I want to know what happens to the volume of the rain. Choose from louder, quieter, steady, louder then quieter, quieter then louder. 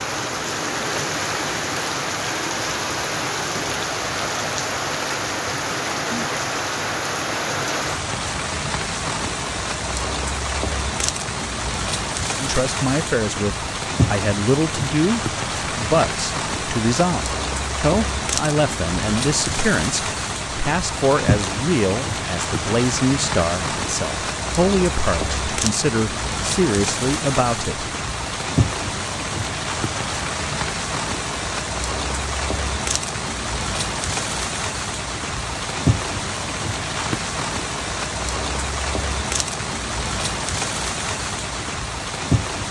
steady.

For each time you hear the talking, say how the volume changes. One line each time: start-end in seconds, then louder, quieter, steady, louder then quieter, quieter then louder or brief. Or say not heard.
12.4-27.9 steady.